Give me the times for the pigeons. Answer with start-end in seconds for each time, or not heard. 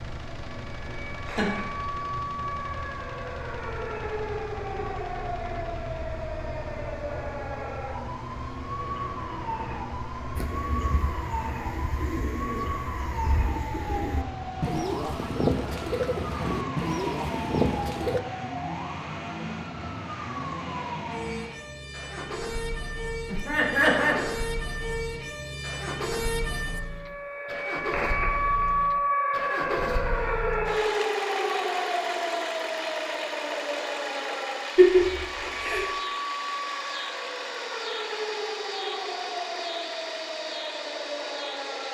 10.3-18.2.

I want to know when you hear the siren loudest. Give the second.
29 s.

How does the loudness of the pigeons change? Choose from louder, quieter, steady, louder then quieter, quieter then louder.
louder.